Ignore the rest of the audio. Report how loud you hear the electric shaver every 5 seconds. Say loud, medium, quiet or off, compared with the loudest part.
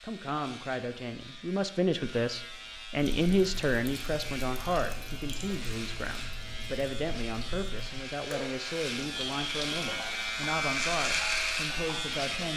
quiet, medium, loud.